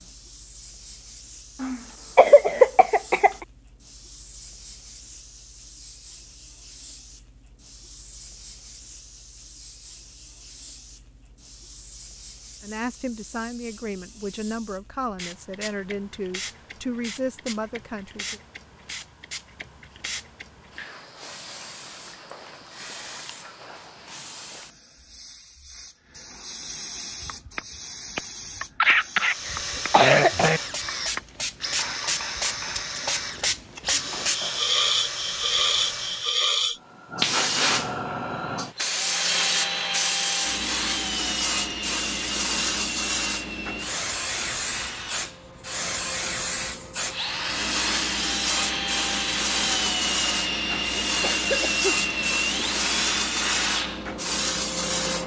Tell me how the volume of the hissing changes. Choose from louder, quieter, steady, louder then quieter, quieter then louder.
louder.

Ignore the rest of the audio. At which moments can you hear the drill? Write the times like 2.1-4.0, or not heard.
29.1-36.5, 38.8-55.2.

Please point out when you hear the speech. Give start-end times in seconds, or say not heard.
12.6-18.4.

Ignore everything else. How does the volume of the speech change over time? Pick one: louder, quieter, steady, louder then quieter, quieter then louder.
steady.